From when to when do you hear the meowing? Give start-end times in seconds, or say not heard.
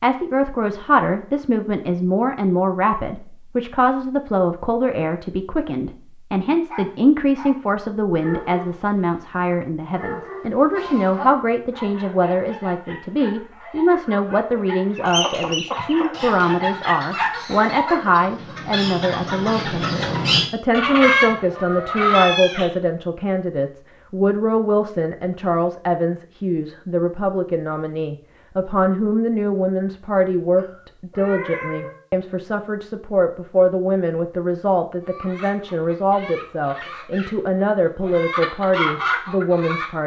10.7-11.3, 22.1-22.7, 30.6-31.9.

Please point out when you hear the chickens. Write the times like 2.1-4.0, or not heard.
14.9-22.3, 35.0-40.0.